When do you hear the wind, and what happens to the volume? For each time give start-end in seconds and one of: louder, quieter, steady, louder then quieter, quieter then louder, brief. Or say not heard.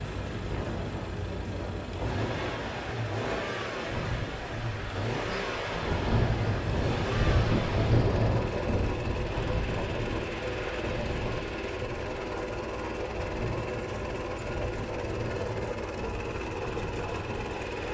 0.0-17.8 louder then quieter.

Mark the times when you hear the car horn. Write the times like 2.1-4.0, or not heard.
not heard.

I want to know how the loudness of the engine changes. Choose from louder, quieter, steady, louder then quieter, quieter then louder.
steady.